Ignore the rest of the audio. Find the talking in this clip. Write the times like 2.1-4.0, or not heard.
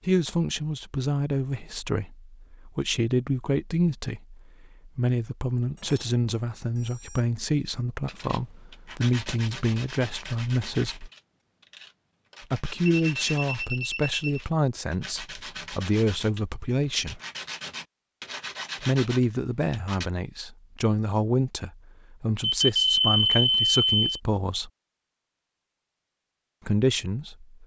0.1-11.1, 12.4-17.2, 18.8-24.7, 26.6-27.6.